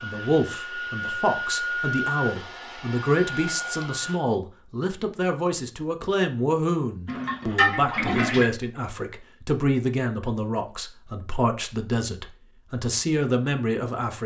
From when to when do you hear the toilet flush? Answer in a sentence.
You can hear the toilet flush from 7.0 to 8.5 s.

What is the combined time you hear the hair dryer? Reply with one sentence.
You can hear the hair dryer for 4 seconds altogether.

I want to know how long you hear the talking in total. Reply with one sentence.
The talking can be heard for 14 seconds in total.